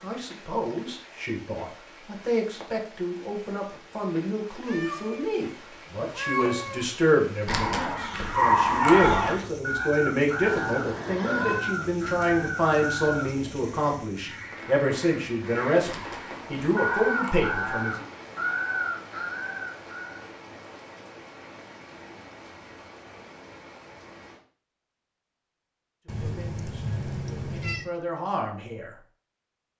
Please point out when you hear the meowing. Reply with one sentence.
The meowing can be heard from 4.5 to 6.9 s, from 10.4 to 11.7 s and from 26.1 to 27.9 s.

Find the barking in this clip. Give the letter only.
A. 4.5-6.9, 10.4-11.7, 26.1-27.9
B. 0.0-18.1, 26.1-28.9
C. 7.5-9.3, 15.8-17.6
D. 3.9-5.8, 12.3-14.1
C.